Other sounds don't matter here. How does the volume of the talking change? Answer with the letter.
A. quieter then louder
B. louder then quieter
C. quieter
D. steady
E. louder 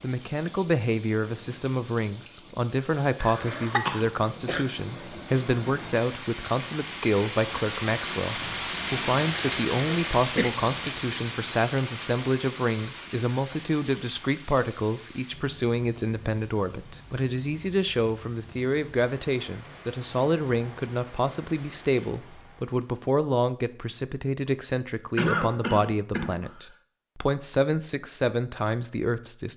D.